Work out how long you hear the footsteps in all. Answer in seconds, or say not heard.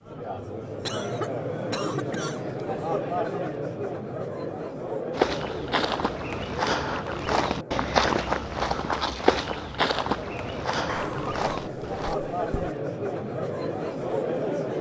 7 s.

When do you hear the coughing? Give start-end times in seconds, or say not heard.
0.8-2.4, 10.8-12.8.